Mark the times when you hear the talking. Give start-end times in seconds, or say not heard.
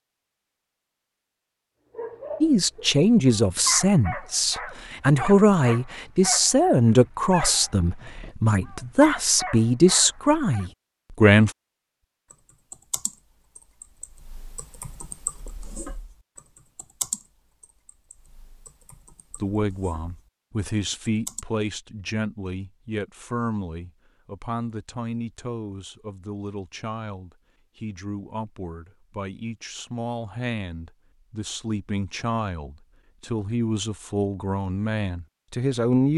2.4-11.5, 19.3-36.1.